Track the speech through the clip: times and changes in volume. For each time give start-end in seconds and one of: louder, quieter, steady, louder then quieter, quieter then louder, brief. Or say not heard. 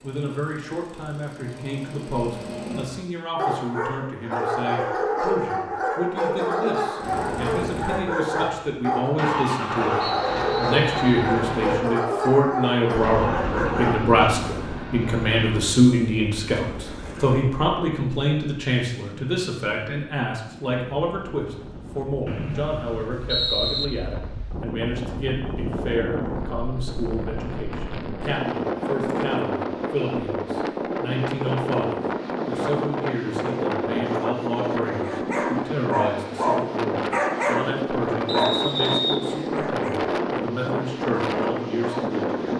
0.0-42.4 louder then quieter.